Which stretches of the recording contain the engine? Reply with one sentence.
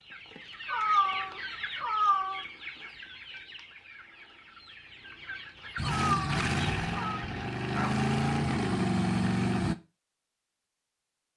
You can hear the engine from 5.8 to 9.8 s.